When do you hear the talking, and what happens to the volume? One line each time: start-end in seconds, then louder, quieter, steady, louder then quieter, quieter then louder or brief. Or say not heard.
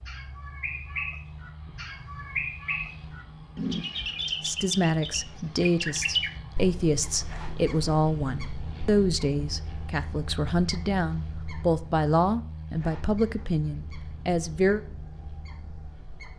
4.4-14.8 steady.